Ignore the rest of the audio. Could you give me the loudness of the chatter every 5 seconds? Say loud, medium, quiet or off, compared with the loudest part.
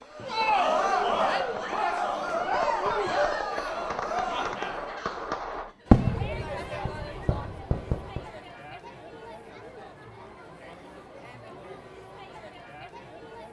loud, quiet, quiet.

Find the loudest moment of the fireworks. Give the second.
6 s.